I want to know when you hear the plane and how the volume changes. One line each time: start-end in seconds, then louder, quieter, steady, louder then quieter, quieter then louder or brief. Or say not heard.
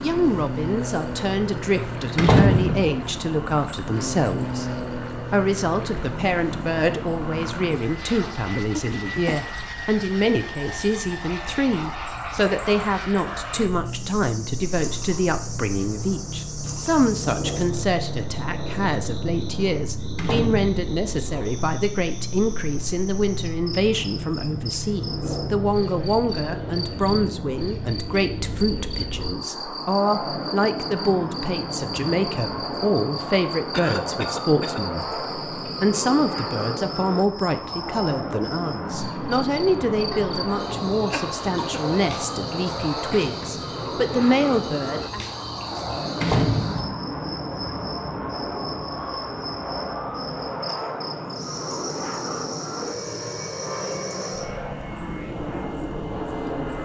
0.0-56.7 steady.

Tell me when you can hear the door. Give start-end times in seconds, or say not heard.
2.1-3.0, 20.1-20.8, 46.2-47.0.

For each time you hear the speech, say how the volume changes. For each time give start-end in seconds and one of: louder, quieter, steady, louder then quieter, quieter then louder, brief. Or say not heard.
0.0-45.2 steady.